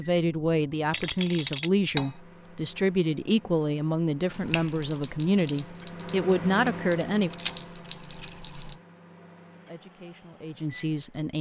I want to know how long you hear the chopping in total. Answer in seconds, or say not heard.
not heard.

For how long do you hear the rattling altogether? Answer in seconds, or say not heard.
2 s.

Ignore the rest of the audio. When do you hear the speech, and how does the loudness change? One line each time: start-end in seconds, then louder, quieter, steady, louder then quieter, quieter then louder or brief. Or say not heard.
0.0-7.3 steady
9.7-11.3 brief.